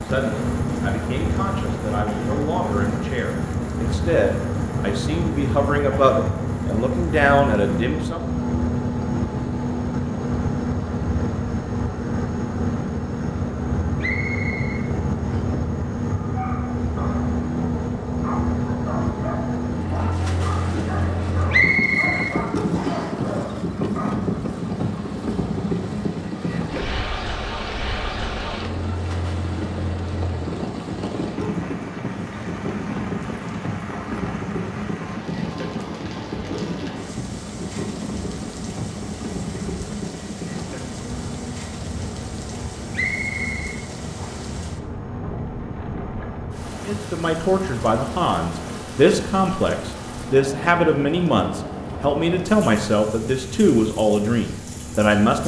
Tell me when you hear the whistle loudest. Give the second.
22 s.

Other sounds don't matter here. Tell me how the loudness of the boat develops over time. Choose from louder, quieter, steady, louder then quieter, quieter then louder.
quieter.